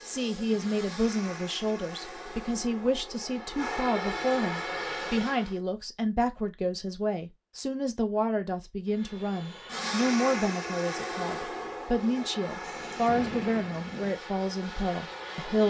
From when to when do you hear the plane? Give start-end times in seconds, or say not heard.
0.0-5.5, 8.9-15.6.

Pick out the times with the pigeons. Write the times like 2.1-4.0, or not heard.
not heard.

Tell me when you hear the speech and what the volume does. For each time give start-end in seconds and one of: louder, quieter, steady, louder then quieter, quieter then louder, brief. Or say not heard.
0.1-15.6 steady.